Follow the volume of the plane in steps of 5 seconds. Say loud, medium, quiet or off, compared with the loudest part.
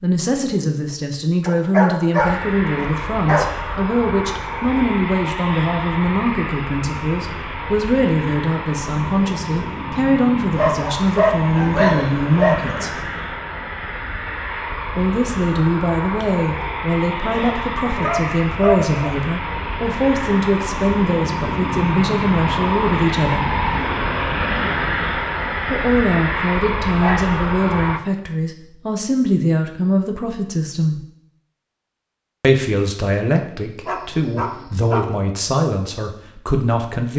medium, medium, medium, medium, loud, loud, off, off.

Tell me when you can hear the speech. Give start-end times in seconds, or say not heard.
0.0-13.0, 14.9-23.5, 25.7-31.1, 32.4-37.1.